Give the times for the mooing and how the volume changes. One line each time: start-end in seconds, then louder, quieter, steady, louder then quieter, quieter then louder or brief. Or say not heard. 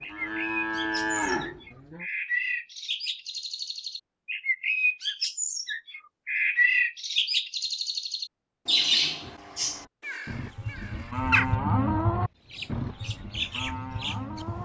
0.0-2.0 brief
9.7-14.6 louder then quieter.